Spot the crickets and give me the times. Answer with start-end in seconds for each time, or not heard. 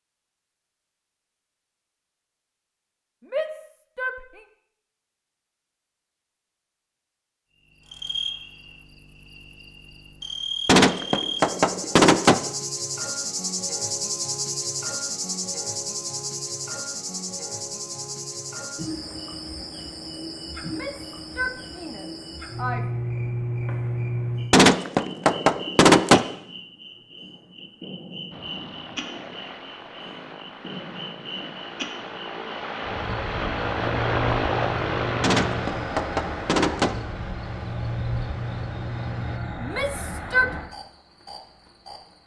7.8-42.2.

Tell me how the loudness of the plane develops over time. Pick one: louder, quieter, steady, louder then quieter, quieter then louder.
louder then quieter.